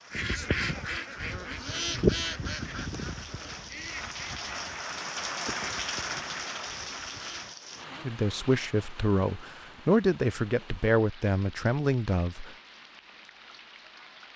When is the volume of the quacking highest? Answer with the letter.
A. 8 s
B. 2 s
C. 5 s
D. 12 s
B.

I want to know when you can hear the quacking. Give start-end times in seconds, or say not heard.
0.1-7.5.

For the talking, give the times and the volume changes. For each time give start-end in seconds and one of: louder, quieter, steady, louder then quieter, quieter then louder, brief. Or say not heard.
8.1-12.6 steady.